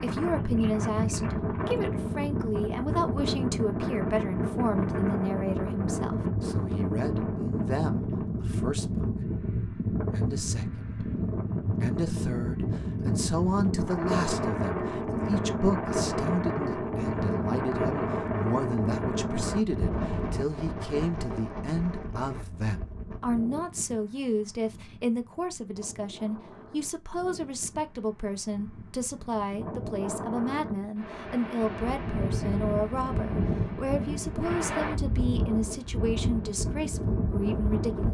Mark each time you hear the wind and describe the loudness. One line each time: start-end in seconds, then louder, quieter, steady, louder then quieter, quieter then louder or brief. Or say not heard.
0.0-38.0 quieter then louder.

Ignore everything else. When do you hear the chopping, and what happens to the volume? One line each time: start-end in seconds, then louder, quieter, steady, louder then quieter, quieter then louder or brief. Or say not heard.
not heard.